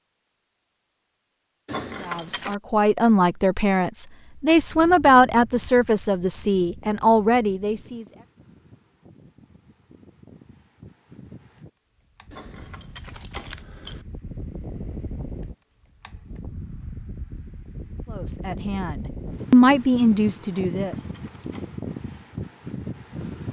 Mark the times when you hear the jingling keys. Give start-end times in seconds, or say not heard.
1.6-2.5, 12.3-14.1, 20.7-21.7.